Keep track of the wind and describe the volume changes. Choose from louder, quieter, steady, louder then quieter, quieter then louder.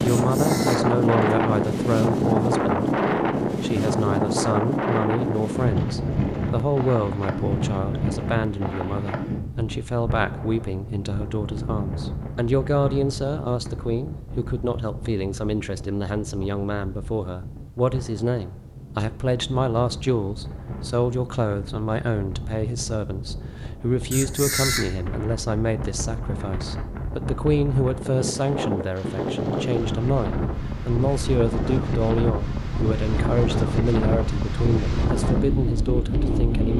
quieter then louder.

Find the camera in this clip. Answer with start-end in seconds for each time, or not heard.
0.1-1.4, 24.1-25.0.